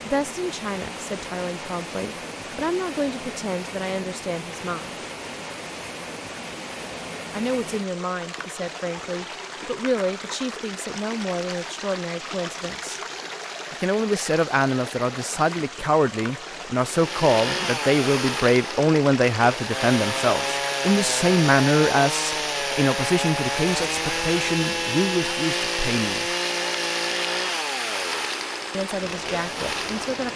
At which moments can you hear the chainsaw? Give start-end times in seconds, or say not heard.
16.9-30.3.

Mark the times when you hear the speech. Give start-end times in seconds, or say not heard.
0.1-5.0, 7.3-13.0, 13.7-26.3, 28.7-30.3.